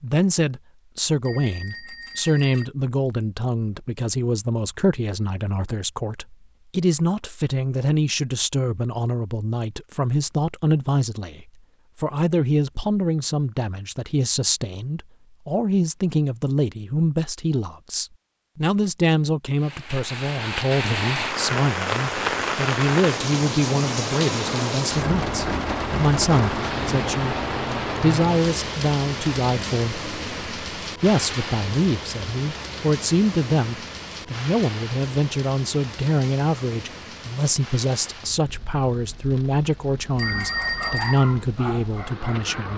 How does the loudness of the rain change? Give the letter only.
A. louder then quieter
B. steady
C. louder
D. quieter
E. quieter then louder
D.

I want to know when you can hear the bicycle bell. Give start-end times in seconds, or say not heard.
1.2-2.6, 40.1-41.2.